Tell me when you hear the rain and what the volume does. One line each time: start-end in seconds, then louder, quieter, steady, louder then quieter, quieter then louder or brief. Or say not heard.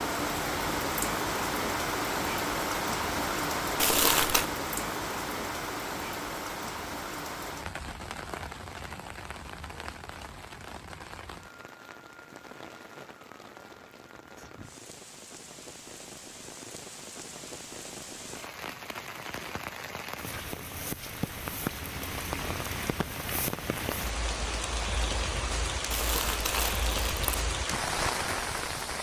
0.0-28.9 quieter then louder.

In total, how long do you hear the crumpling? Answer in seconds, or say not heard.
2 s.